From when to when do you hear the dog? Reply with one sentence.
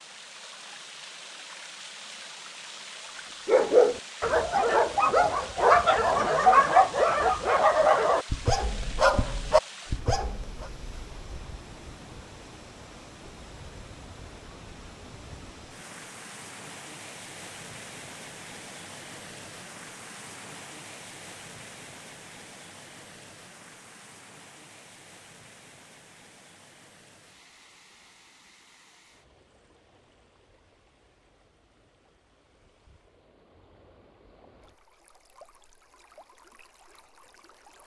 The dog can be heard from 3.5 to 10.7 s.